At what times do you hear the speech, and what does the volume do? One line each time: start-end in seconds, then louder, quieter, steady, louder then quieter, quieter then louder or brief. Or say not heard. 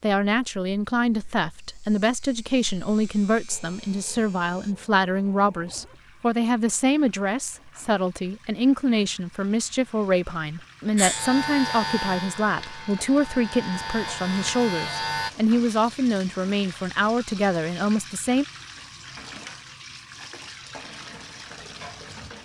0.0-18.4 steady.